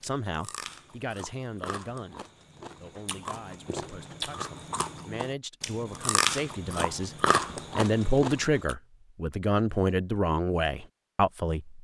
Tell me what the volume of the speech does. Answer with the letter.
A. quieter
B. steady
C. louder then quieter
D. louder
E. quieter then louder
E.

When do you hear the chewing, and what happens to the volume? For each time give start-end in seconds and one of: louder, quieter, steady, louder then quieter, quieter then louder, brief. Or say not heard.
0.0-8.8 louder.